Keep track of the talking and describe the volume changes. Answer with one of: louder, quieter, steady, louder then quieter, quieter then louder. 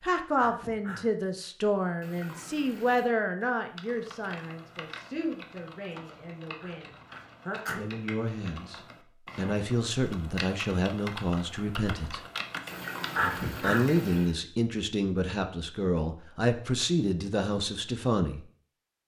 quieter then louder.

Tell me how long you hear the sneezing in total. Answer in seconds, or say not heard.
3 s.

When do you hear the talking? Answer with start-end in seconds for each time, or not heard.
0.0-7.0, 7.7-12.2, 13.6-18.4.